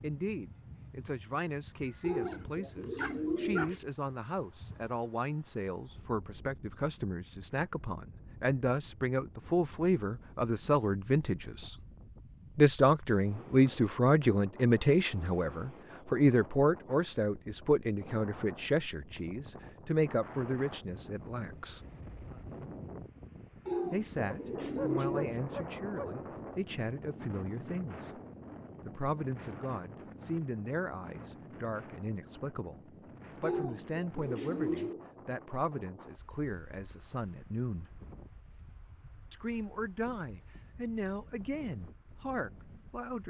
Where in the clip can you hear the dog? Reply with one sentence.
The dog can be heard from 2.0 to 3.7 s and from 24.3 to 26.1 s.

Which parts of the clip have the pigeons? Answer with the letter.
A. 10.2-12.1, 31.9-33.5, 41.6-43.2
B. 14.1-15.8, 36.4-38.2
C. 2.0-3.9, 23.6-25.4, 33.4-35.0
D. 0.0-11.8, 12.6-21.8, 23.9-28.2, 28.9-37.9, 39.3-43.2
C.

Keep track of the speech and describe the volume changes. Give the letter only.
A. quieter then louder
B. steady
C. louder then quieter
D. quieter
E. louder
C.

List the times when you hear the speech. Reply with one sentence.
The speech can be heard from 0.0 to 11.8 s, from 12.6 to 21.8 s, from 23.9 to 28.2 s, from 28.9 to 37.9 s and from 39.3 to 43.2 s.